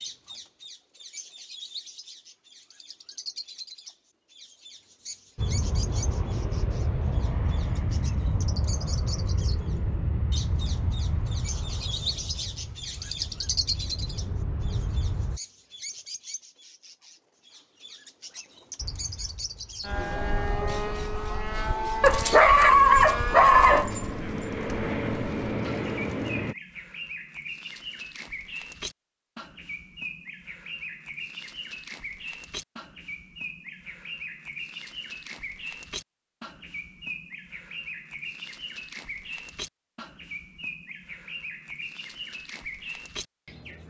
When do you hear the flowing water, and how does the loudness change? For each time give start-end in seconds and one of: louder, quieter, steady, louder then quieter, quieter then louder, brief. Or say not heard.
not heard.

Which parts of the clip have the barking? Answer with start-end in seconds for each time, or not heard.
22.0-24.1.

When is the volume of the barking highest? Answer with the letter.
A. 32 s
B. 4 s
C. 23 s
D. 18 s
C.